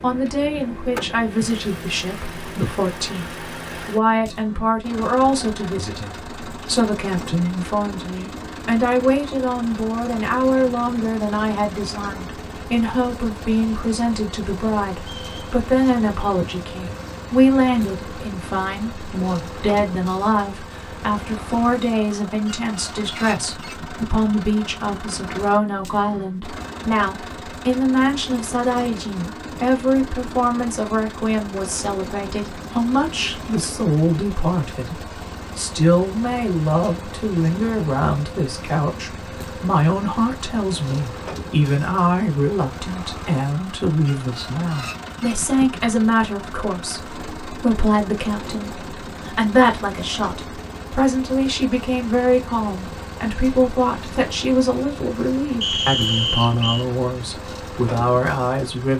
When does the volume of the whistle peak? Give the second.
56 s.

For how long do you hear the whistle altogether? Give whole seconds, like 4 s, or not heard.
2 s.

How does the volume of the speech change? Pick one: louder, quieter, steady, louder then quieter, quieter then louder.
steady.